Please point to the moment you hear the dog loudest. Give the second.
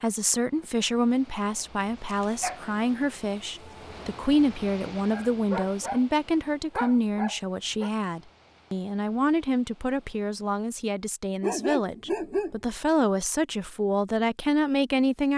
12 s.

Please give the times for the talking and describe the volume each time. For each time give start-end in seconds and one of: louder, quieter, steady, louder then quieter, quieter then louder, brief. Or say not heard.
0.0-15.3 steady.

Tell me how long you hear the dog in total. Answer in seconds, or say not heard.
4 s.